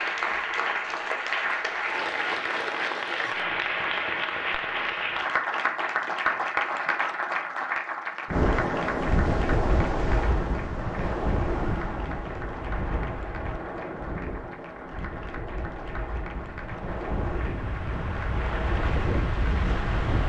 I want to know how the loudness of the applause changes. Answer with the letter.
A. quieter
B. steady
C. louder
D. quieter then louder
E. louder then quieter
A.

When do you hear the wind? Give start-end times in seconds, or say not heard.
8.2-20.2.